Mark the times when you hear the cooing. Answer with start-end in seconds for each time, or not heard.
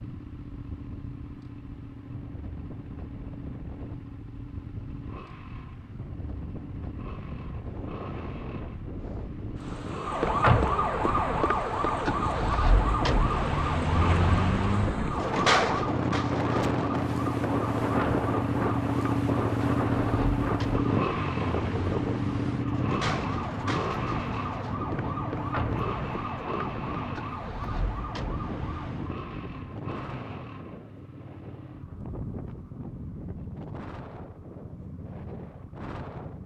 not heard.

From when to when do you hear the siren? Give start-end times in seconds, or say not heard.
10.0-29.1.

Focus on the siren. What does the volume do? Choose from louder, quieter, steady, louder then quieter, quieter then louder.
quieter.